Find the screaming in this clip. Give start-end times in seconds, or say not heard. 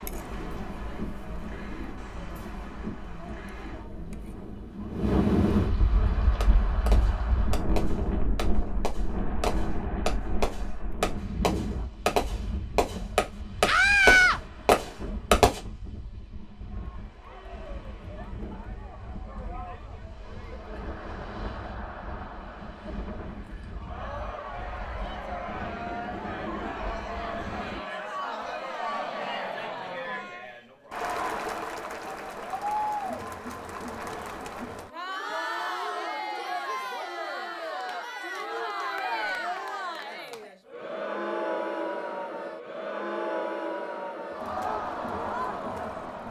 13.7-14.4, 38.8-39.5.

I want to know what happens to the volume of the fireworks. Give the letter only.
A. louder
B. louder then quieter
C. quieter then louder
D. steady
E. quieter
A.